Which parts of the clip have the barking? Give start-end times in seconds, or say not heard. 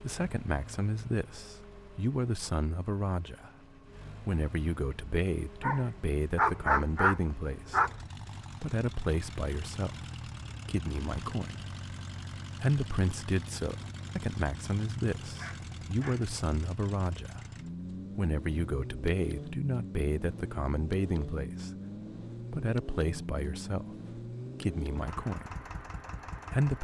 5.6-8.0, 15.3-16.3.